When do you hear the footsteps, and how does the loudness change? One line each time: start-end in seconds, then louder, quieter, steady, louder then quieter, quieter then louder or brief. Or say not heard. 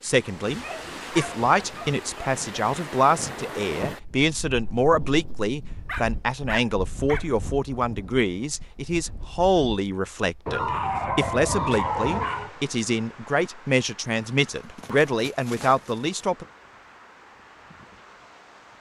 not heard.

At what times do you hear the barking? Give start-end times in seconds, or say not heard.
0.5-2.4, 5.8-7.3, 10.4-12.5, 14.6-16.2.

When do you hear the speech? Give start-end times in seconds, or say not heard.
0.0-16.4.